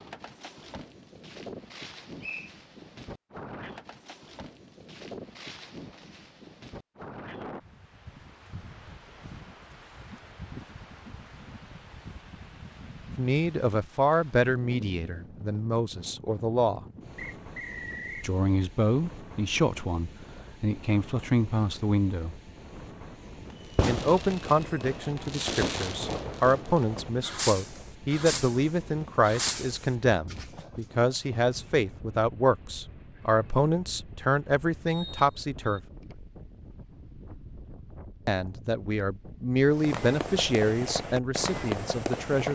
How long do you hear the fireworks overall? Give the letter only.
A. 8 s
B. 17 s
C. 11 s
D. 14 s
C.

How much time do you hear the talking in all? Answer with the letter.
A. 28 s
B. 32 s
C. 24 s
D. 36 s
C.